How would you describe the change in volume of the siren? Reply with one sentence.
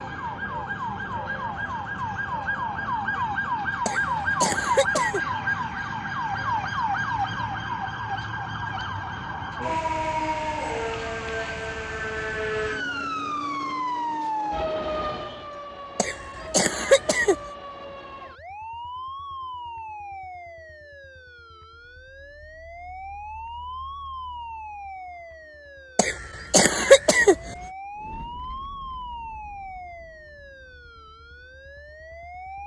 The loudness of the siren goes down.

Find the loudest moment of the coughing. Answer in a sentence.
The loudest moment of the coughing is at 27 seconds.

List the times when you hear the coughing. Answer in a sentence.
The coughing can be heard from 3.9 to 5.2 s, from 15.9 to 17.4 s and from 25.9 to 27.5 s.